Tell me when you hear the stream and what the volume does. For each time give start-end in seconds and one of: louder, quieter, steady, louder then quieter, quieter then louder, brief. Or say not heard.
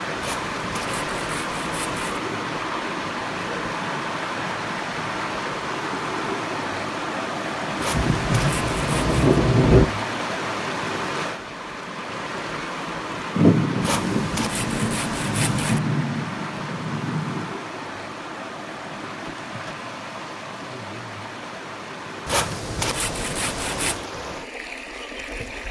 0.0-25.6 quieter.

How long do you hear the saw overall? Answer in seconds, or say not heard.
7 s.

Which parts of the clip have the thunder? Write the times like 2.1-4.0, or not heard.
7.9-9.8, 13.3-17.6.